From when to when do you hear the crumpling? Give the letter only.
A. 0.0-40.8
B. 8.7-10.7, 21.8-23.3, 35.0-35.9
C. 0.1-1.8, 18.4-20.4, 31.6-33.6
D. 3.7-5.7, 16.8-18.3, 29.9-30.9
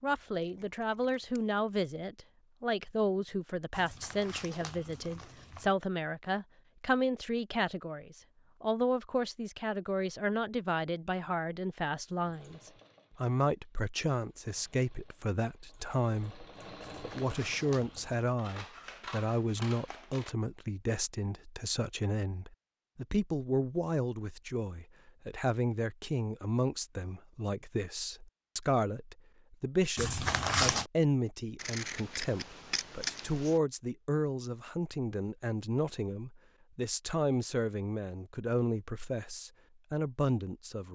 D.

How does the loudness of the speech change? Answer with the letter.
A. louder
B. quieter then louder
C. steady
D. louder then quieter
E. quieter
C.